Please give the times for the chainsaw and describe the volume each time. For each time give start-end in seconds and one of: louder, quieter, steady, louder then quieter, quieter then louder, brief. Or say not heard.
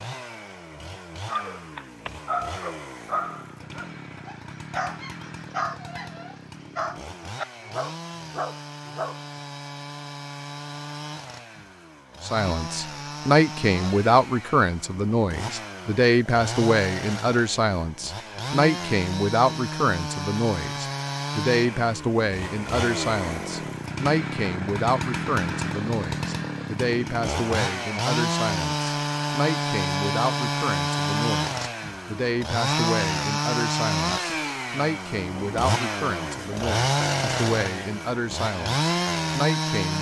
0.0-39.9 louder.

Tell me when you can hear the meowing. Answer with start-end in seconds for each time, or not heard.
not heard.